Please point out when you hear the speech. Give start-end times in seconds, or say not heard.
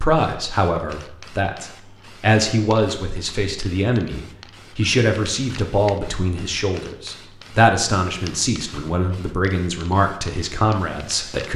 0.0-11.5.